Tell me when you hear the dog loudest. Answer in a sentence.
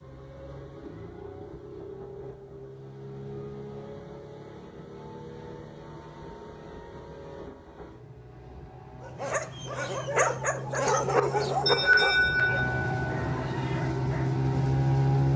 The loudest moment of the dog is at 11 seconds.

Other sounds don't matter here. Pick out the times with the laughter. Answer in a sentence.
You can hear the laughter from 11.7 to 13.8 s.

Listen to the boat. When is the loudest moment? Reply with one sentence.
The loudest moment of the boat is at 15 seconds.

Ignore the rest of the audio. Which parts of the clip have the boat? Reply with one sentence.
The boat can be heard from 0.0 to 15.3 s.